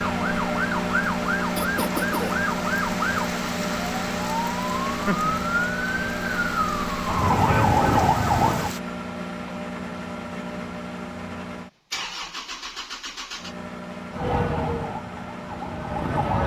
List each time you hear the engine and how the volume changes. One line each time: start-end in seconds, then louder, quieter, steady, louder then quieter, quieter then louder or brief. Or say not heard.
0.0-16.4 quieter.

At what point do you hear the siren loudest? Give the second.
8 s.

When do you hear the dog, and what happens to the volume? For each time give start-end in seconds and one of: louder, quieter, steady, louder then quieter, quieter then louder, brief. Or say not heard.
not heard.